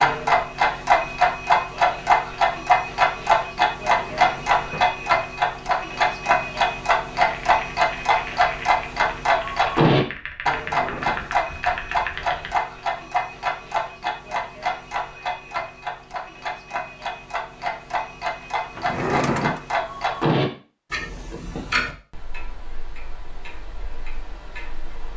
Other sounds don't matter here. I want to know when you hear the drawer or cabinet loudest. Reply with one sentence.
The volume of the drawer or cabinet peaks at 19 seconds.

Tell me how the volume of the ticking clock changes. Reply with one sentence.
The loudness of the ticking clock goes down.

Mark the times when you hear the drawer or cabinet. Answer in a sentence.
The drawer or cabinet can be heard from 3.9 to 5.0 s, from 10.6 to 11.3 s and from 18.8 to 19.6 s.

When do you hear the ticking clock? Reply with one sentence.
You can hear the ticking clock from 0.0 to 25.1 s.